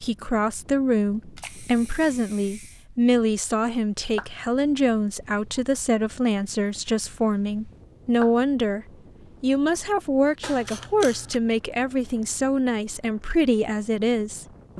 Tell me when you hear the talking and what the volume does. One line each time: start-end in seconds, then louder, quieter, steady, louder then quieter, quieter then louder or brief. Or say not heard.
0.0-14.7 steady.